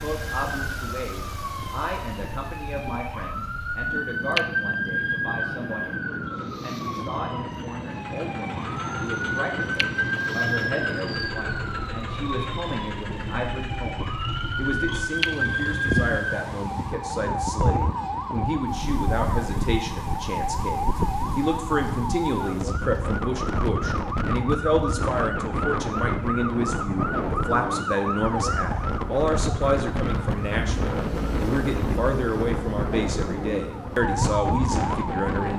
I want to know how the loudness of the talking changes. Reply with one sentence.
The loudness of the talking goes up.